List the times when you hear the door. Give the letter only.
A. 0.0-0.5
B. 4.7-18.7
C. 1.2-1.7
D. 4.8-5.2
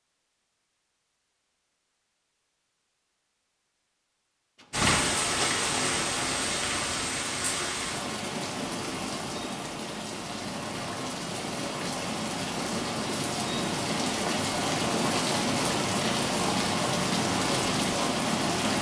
D.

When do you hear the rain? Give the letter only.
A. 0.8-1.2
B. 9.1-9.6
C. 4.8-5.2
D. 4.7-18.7
D.